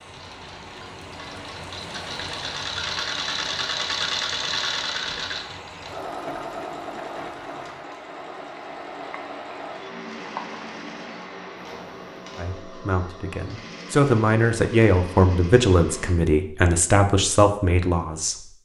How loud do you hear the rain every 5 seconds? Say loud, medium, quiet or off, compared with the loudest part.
loud, loud, loud, off.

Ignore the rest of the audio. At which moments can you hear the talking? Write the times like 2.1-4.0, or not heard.
12.3-18.4.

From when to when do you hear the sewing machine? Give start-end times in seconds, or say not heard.
0.0-16.1.